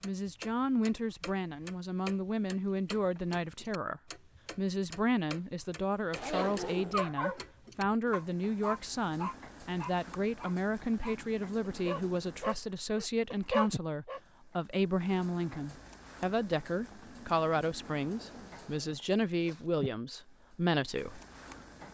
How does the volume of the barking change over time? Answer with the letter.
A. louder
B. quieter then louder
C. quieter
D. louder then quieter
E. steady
B.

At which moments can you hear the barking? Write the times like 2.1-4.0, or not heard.
6.2-14.2.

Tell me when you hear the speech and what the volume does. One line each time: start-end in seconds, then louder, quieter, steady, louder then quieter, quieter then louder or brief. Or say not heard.
0.0-21.2 steady.